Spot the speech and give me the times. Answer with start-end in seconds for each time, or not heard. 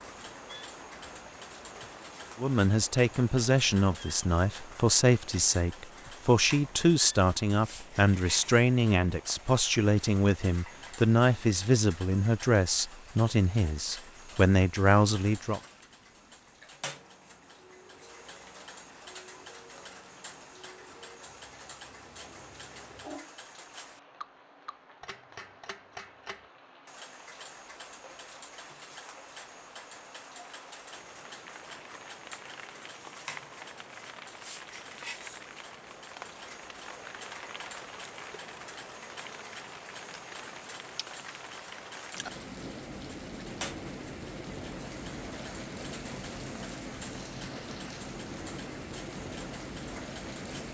2.4-15.6.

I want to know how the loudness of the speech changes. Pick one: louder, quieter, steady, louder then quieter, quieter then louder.
steady.